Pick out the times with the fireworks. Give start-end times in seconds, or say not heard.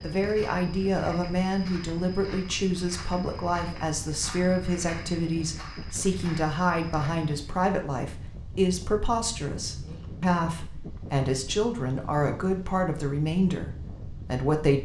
not heard.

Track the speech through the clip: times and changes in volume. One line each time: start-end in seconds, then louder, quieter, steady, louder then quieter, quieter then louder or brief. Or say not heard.
0.0-14.7 steady.